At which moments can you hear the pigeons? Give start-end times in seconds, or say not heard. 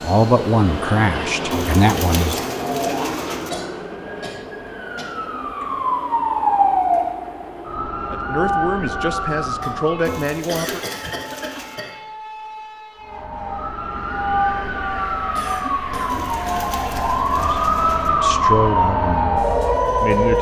1.5-3.5, 10.1-11.8, 16.1-18.1.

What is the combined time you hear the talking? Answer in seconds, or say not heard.
8 s.